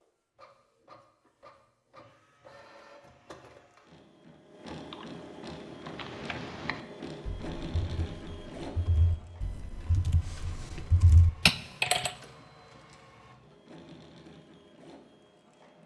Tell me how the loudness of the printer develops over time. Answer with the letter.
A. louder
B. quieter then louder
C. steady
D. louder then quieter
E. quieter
D.